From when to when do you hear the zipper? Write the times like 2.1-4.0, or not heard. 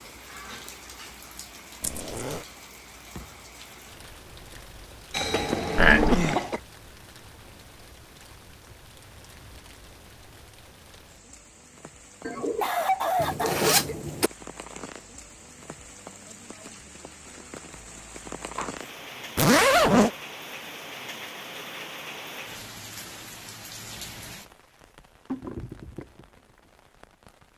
1.8-2.5, 13.2-14.3, 19.4-20.1.